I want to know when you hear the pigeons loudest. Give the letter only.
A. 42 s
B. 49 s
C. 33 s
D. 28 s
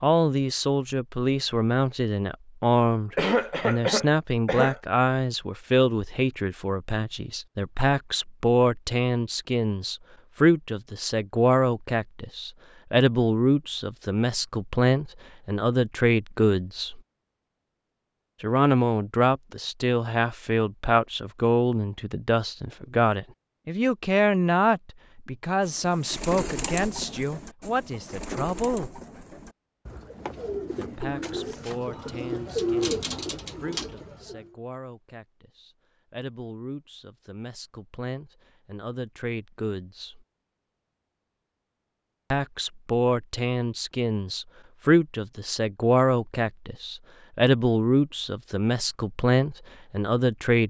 C.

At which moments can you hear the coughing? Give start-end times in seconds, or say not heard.
3.1-4.8.